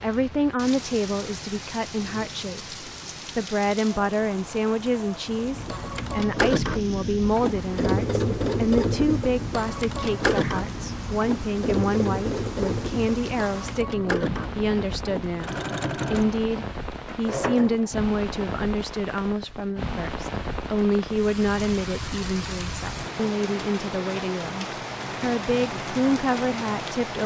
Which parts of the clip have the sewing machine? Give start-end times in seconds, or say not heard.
5.3-17.9.